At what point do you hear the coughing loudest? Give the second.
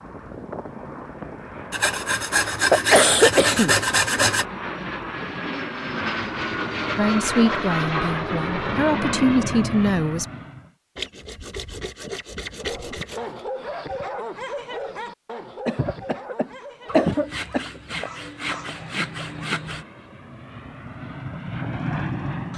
3 s.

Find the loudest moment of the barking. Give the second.
14 s.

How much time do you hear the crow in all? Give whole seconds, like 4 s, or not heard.
not heard.